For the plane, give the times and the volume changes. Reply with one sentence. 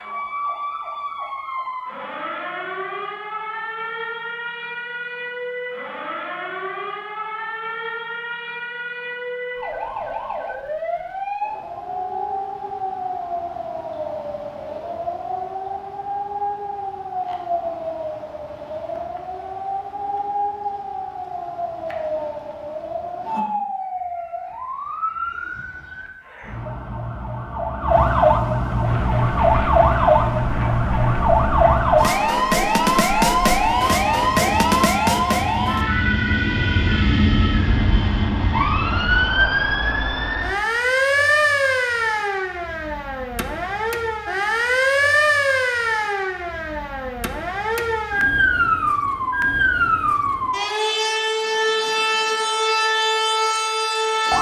You can hear the plane from 28.8 to 39.3 s, getting louder.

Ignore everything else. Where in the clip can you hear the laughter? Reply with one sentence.
The laughter can't be heard in this clip.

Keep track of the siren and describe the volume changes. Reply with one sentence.
The volume of the siren goes up.